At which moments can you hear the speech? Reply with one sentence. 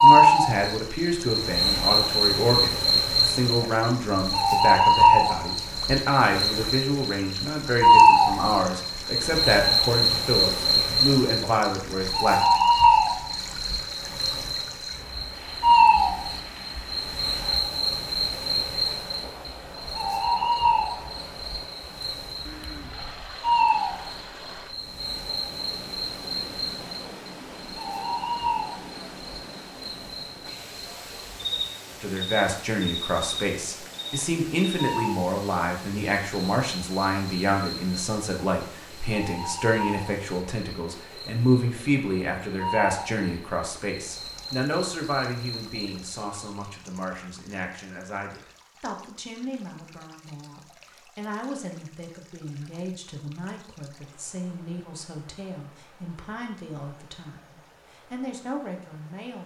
You can hear the speech from 0.0 to 12.4 s and from 32.0 to 59.4 s.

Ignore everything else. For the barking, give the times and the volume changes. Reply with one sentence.
You can't hear the barking here.